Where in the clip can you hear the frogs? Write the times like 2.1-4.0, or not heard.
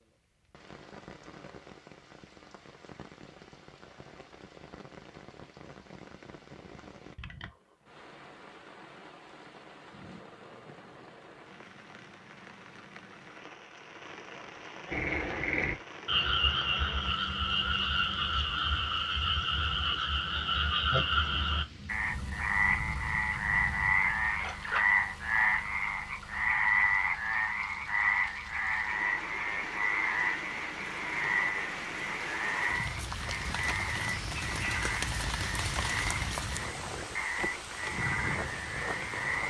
14.9-39.4.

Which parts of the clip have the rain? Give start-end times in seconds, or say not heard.
0.0-39.4.